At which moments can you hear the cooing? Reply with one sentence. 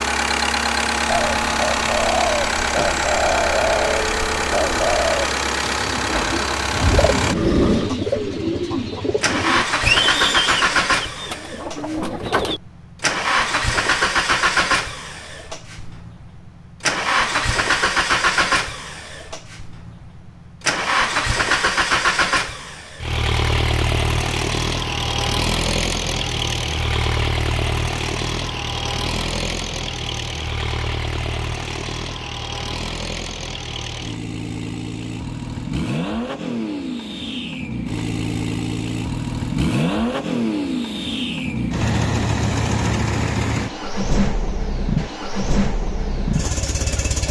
The cooing can be heard from 1.1 to 12.6 s.